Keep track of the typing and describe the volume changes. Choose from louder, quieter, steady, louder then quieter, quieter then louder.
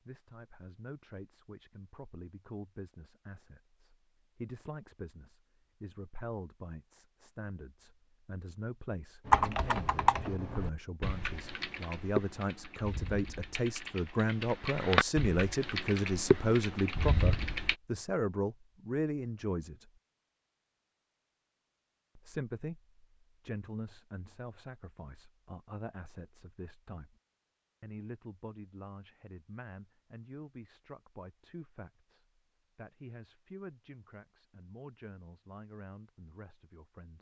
quieter then louder.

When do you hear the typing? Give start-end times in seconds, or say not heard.
9.2-17.8.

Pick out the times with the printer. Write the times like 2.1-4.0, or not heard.
not heard.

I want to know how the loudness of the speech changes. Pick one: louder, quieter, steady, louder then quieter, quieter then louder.
louder then quieter.